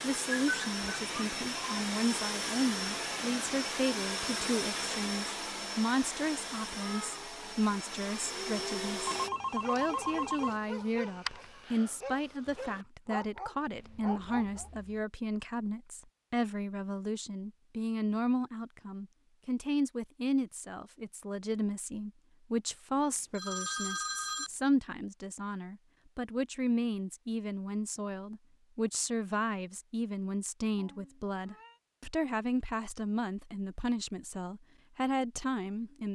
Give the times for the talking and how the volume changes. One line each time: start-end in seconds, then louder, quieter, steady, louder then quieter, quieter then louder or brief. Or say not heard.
0.0-36.0 steady.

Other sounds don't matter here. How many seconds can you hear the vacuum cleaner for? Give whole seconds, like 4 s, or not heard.
9 s.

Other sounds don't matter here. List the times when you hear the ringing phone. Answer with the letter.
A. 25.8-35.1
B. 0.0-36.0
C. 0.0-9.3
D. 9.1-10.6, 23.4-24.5
D.